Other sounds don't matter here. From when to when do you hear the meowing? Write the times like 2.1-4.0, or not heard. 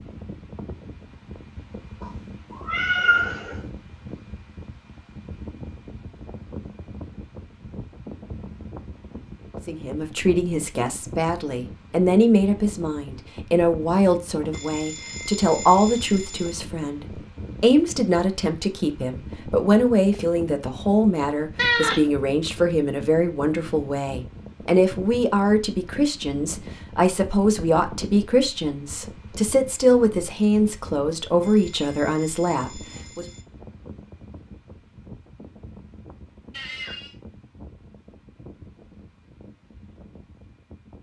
2.0-3.5, 21.6-22.0, 36.5-37.1.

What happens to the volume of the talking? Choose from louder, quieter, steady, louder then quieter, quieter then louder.
steady.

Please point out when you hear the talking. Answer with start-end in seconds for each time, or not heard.
9.7-33.2.